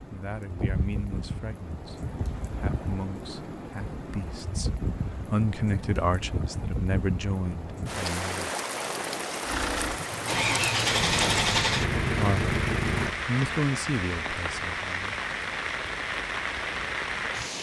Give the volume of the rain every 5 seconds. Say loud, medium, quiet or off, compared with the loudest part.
medium, loud, loud, loud.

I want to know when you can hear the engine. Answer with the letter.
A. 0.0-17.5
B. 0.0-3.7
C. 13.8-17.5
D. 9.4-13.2
D.